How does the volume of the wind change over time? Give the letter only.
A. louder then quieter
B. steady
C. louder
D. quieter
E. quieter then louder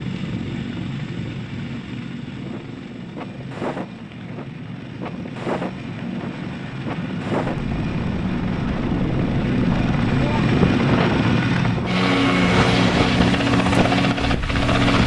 C.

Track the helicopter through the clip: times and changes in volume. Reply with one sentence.
The helicopter can be heard from 0.0 to 15.0 s, getting louder.